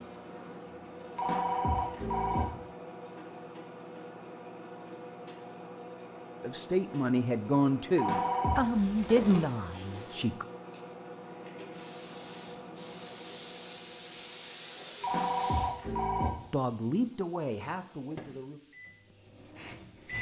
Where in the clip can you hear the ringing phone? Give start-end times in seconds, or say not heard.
1.1-2.5, 8.0-8.7, 15.0-16.3.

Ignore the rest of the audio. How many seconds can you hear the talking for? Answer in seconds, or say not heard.
6 s.